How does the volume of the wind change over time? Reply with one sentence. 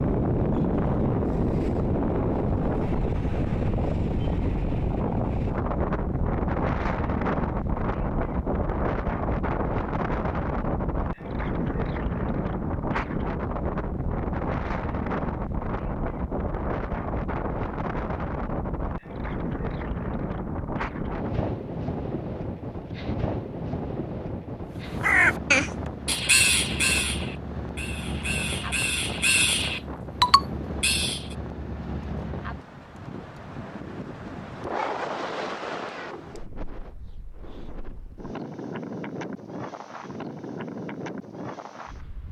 The volume of the wind goes down.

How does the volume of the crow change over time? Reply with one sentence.
The volume of the crow goes down, then up.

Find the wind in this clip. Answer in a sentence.
The wind can be heard from 0.0 to 42.2 s.